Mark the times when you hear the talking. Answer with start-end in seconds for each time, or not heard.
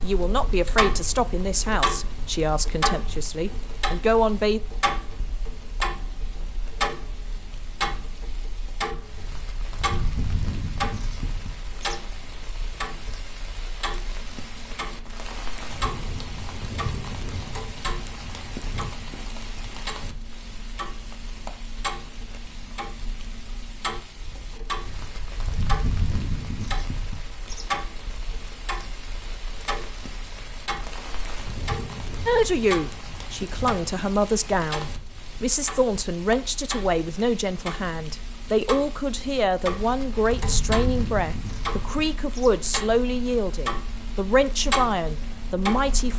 0.0-4.6, 32.2-46.1.